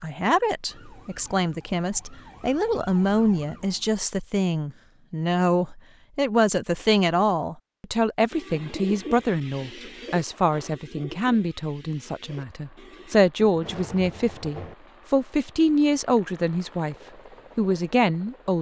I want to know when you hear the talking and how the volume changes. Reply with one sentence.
You can hear the talking from 0.0 to 16.9 s, at a steady volume; and briefly from 17.6 to 18.5 s.